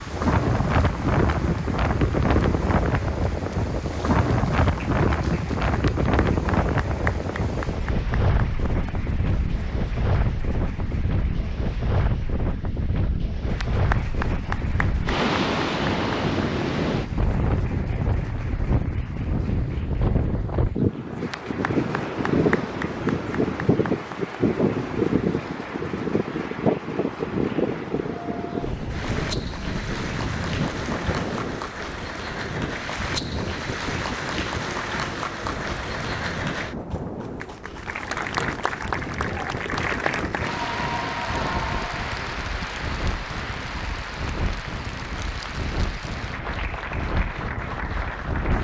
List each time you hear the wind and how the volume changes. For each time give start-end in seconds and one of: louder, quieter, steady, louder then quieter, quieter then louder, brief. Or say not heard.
0.0-48.5 quieter.